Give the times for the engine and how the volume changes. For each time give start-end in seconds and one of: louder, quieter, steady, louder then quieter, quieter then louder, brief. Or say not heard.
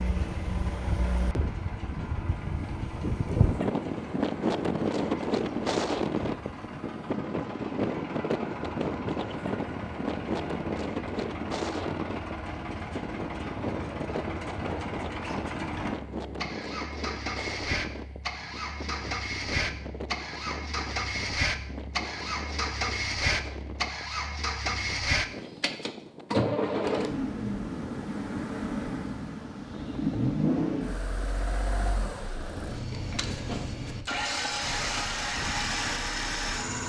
0.0-36.8 louder.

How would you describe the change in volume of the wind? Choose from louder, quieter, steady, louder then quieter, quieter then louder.
quieter.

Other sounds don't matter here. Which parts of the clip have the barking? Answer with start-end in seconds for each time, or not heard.
not heard.